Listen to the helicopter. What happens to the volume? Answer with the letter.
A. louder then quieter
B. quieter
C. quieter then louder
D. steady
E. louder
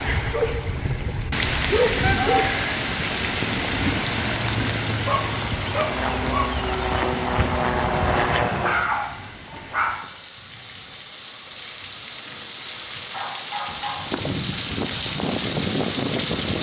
E.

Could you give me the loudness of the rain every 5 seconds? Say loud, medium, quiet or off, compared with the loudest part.
loud, medium, medium, loud.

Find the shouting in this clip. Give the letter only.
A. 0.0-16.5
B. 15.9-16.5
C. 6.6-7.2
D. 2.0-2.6
D.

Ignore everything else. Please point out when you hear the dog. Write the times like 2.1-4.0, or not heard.
0.3-2.5, 4.9-6.5, 8.7-10.1, 13.1-14.1.